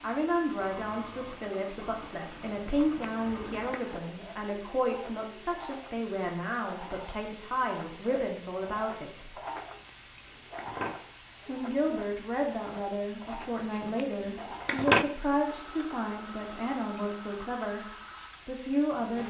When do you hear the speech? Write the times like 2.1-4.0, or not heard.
0.0-9.3, 11.4-19.2.